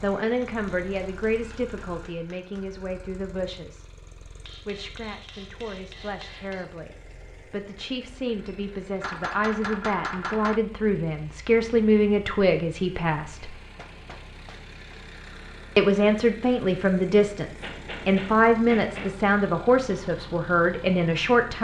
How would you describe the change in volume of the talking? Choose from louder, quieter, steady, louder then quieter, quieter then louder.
quieter then louder.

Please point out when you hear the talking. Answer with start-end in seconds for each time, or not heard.
0.0-13.6, 15.8-21.5.